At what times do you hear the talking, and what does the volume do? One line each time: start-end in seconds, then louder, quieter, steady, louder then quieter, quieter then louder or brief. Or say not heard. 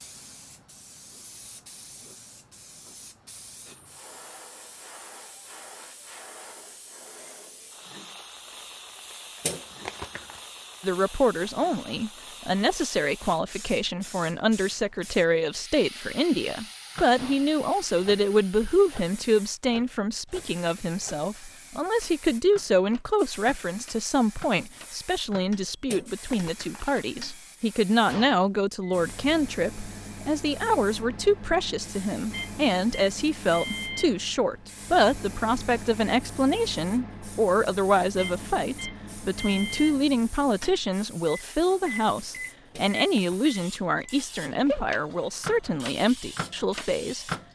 10.8-47.2 steady.